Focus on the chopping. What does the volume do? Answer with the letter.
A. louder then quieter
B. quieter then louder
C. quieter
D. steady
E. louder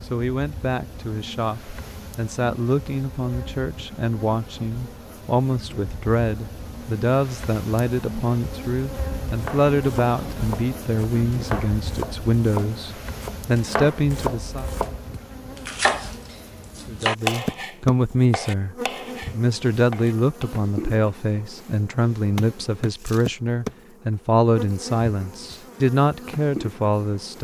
A.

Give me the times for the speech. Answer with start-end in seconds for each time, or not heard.
0.0-14.7, 16.9-27.3.